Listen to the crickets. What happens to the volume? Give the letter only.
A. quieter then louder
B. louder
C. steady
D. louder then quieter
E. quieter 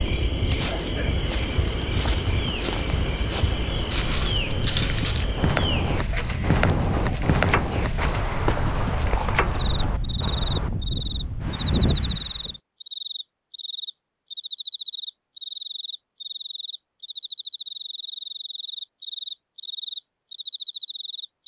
C.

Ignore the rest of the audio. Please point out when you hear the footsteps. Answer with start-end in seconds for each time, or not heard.
0.1-10.7.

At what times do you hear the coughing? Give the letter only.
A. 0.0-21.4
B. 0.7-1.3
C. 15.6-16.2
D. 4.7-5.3
B.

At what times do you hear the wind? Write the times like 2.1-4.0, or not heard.
0.0-12.6.